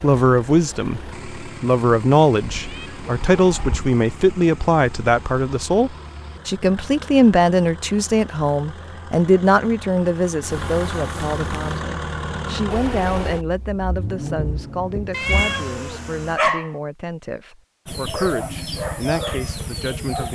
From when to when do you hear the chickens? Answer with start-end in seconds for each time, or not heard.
17.9-20.3.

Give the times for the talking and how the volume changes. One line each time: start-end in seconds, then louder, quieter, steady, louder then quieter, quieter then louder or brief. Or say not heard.
0.0-20.3 quieter.